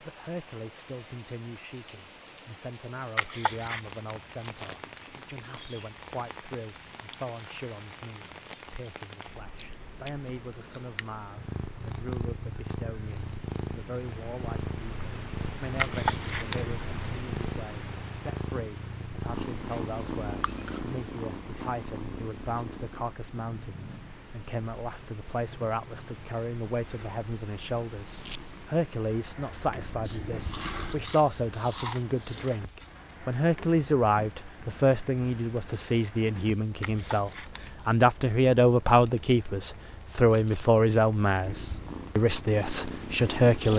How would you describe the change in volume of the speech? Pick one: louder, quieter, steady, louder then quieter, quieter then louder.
louder.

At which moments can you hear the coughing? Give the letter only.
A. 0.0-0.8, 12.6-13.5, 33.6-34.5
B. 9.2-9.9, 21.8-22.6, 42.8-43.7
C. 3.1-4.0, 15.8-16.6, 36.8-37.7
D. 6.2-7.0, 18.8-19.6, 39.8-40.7
C.